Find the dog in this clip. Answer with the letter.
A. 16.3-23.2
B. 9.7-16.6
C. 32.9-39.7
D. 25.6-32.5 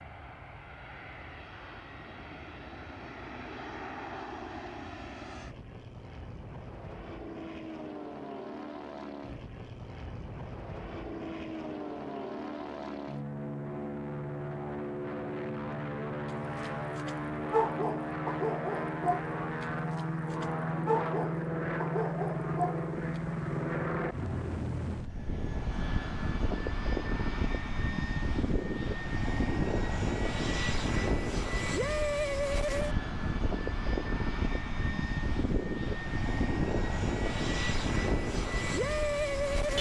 A.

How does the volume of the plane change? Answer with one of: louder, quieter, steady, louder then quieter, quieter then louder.
louder.